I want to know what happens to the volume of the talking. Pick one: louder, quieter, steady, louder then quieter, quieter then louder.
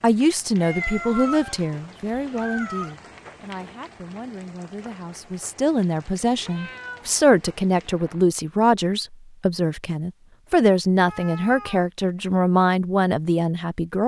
quieter then louder.